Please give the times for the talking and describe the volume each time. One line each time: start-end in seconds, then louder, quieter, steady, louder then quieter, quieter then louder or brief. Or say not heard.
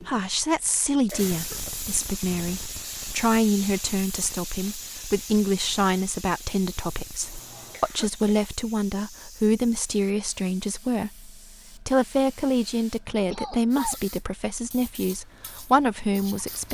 0.0-16.6 steady.